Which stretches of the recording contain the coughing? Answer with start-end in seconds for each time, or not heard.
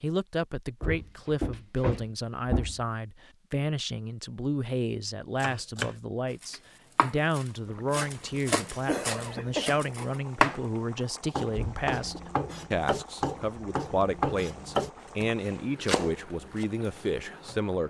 8.8-9.8.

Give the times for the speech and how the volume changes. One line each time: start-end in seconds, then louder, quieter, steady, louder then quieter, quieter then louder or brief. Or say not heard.
0.0-17.8 steady.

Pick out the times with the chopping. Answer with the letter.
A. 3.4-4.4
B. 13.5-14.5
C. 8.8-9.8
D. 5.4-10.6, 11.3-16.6
D.